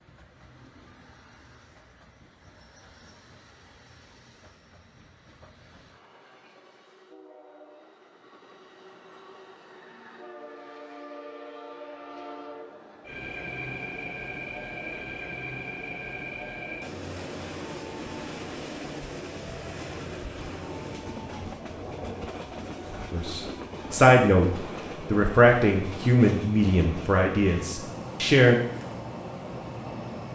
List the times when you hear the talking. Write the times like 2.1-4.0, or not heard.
23.1-28.6.